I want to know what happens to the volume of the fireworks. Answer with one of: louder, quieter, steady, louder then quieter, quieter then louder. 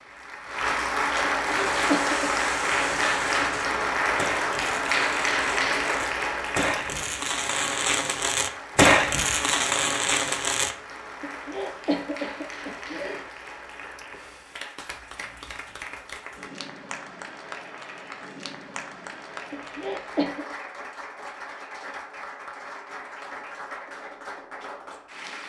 louder.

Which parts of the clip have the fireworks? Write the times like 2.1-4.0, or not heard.
1.4-10.8.